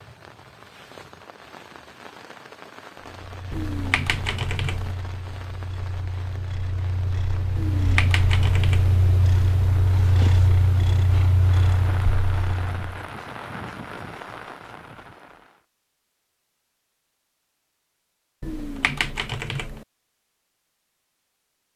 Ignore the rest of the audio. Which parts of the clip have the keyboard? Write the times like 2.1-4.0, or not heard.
3.5-5.0, 7.5-9.0, 18.4-19.9.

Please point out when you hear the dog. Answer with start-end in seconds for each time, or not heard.
not heard.